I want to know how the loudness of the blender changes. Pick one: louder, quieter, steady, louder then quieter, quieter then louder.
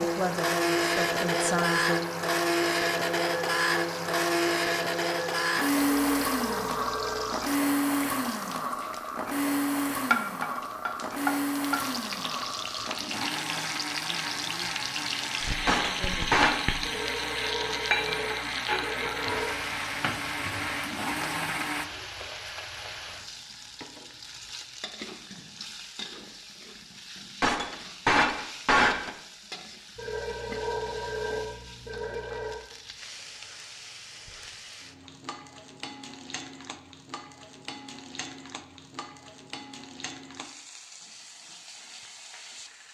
quieter.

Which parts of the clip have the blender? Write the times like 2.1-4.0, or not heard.
0.0-21.9.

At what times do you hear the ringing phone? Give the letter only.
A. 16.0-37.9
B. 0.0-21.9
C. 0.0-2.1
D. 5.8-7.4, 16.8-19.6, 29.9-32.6
D.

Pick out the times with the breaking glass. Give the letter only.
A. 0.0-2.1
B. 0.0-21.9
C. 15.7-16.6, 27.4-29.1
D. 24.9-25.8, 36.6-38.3
C.